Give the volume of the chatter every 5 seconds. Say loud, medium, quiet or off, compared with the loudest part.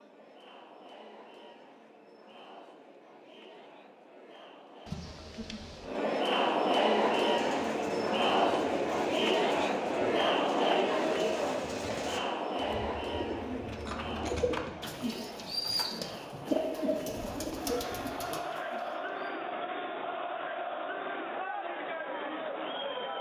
quiet, loud, loud, medium, medium.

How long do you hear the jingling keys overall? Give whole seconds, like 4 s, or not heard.
3 s.